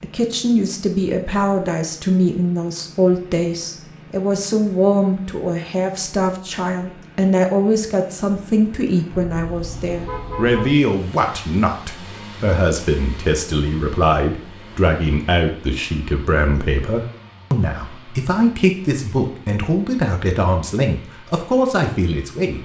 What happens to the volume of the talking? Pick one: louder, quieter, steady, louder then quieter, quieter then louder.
steady.